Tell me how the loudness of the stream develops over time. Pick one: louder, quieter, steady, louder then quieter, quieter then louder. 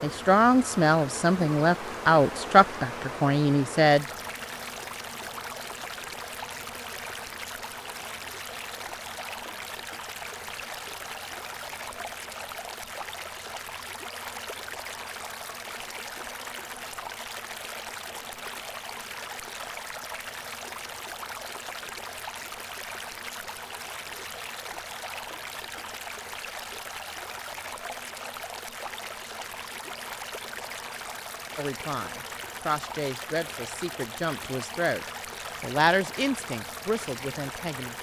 steady.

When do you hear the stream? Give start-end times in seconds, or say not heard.
0.0-37.9.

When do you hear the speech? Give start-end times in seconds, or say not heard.
0.0-4.0, 31.6-37.9.